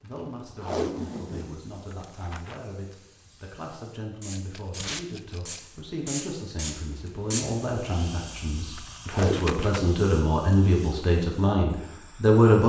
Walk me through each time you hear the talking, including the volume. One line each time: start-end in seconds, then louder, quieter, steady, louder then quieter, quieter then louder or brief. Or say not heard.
0.0-12.6 louder.